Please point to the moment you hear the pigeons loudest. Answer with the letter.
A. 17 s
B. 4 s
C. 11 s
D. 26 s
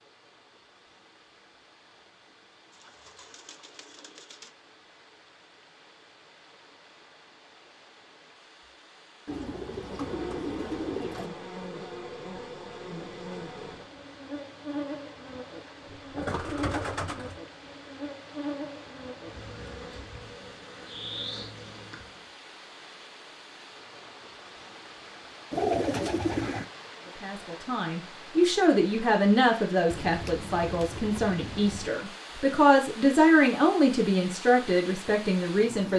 D.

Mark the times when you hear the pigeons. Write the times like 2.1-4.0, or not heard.
2.7-4.5, 9.2-11.3, 15.8-17.4, 25.5-26.7, 29.9-31.9.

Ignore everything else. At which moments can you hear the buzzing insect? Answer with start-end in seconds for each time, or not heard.
9.7-22.2.